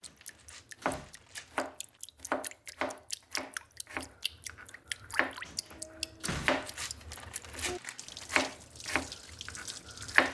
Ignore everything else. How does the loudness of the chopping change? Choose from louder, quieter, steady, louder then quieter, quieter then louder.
quieter then louder.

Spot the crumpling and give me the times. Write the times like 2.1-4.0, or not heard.
0.1-2.0, 6.5-8.2.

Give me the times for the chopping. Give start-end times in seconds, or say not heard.
0.8-10.2.